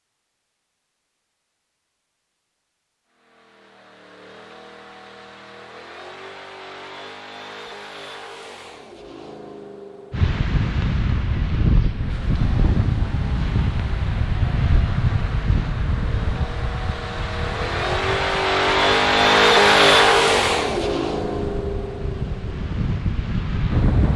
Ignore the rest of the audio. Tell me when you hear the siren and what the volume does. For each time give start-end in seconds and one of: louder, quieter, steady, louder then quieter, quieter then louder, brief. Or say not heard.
not heard.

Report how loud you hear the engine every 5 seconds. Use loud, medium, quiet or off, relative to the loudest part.
quiet, quiet, quiet, loud, loud.